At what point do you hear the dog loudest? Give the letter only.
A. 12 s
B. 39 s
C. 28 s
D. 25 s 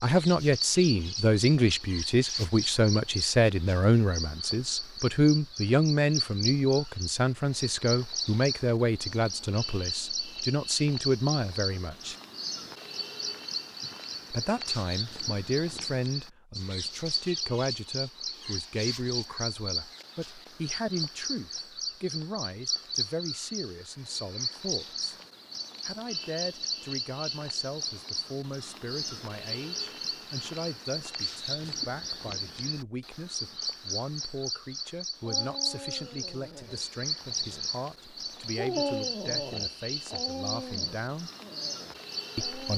B.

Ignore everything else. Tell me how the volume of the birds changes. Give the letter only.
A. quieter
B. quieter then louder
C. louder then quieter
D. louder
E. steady
E.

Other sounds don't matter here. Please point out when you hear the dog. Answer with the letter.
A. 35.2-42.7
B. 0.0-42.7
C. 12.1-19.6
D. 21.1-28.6
A.